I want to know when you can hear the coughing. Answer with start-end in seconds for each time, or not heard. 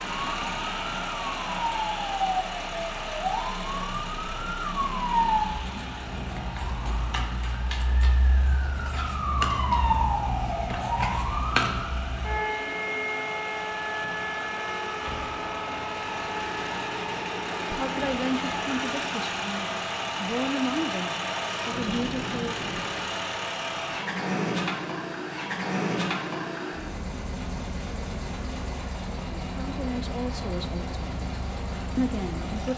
not heard.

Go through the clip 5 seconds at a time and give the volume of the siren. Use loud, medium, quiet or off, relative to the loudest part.
loud, loud, loud, medium, off, off, off.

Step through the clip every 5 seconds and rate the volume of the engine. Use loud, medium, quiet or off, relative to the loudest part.
loud, medium, medium, loud, loud, loud, medium.